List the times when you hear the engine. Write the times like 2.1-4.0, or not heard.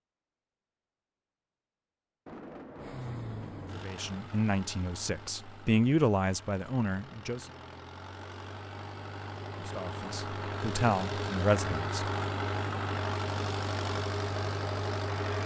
2.8-15.4.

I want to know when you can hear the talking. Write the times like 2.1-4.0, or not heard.
3.7-7.5, 9.6-12.1.